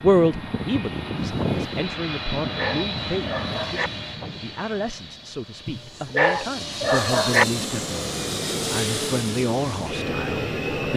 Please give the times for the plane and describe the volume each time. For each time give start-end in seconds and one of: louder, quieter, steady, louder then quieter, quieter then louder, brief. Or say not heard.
0.0-10.9 quieter then louder.